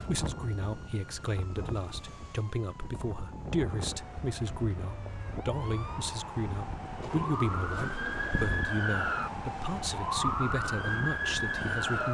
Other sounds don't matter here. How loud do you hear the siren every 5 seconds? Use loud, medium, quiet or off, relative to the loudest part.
quiet, medium, loud.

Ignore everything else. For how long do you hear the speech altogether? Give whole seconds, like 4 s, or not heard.
12 s.